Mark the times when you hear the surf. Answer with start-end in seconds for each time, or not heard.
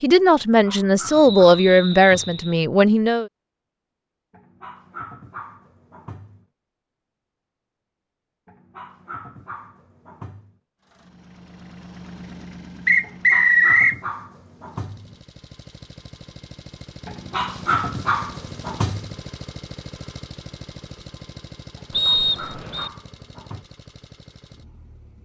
not heard.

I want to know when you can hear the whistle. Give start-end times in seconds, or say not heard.
1.1-2.6, 12.8-14.0, 21.9-22.9.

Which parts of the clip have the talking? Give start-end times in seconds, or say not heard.
0.0-3.3.